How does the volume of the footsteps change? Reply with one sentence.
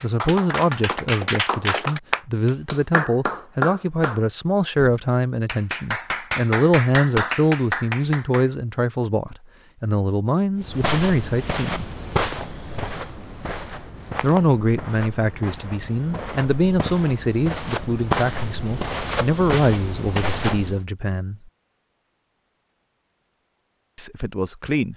The volume of the footsteps goes down, then up.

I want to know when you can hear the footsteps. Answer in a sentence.
The footsteps can be heard from 10.6 to 20.8 s.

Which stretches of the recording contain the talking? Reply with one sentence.
You can hear the talking from 0.0 to 11.8 s, from 14.2 to 21.4 s and from 23.9 to 24.9 s.